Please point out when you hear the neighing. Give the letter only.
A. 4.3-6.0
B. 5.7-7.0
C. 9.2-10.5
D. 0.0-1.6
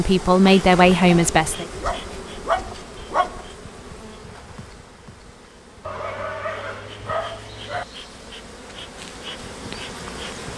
B.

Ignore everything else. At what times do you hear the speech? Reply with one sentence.
You can hear the speech from 0.0 to 1.6 s.